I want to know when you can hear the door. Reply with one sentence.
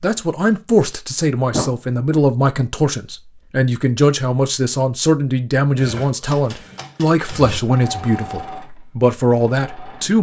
You can hear the door from 1.5 to 2.2 s.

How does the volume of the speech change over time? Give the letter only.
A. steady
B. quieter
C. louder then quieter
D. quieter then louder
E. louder
A.